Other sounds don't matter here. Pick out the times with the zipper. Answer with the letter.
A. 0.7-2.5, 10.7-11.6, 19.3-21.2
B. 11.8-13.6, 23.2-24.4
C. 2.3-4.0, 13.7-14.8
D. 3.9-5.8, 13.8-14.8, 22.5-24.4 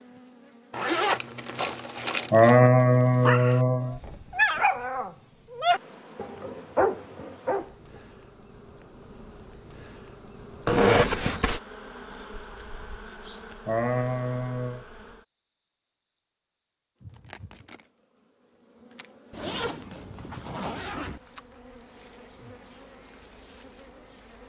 A.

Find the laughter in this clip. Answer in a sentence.
You can hear the laughter from 2.3 to 4.0 s and from 13.7 to 14.8 s.